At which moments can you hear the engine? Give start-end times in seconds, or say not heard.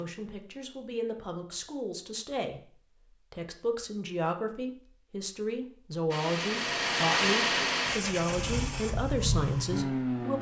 6.1-10.3.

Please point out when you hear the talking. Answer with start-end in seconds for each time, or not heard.
0.0-10.3.